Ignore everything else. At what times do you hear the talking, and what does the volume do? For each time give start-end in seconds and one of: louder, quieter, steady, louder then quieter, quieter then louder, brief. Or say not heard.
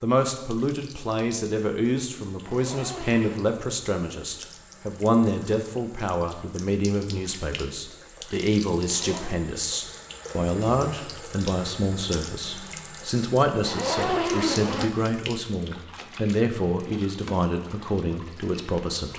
0.0-19.1 steady.